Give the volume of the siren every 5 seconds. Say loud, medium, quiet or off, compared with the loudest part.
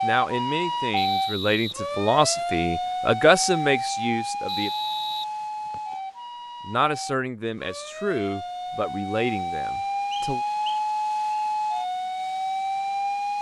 loud, medium, loud.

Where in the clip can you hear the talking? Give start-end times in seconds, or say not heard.
0.0-4.7, 6.7-10.4.